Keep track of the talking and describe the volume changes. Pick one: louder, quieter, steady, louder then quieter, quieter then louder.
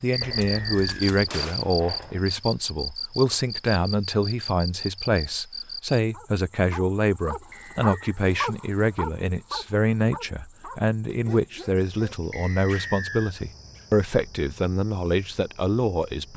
steady.